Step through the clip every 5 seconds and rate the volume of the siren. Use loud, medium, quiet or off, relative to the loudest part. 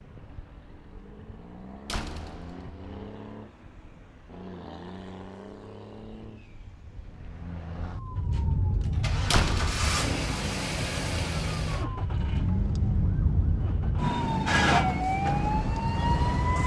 off, medium, loud, loud.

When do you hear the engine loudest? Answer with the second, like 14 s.
10 s.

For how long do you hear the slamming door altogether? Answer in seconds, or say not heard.
2 s.